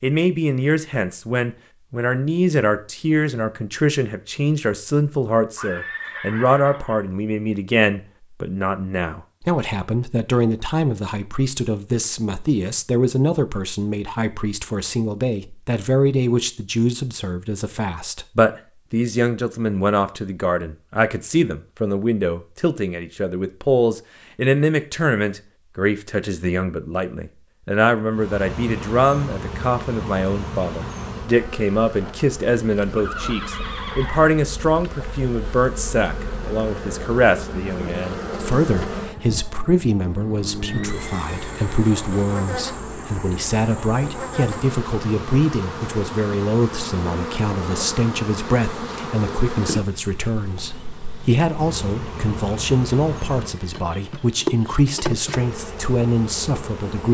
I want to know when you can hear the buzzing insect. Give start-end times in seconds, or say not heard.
28.1-57.0.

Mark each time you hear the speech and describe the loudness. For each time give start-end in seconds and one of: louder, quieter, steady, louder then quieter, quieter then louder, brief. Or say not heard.
0.0-57.0 steady.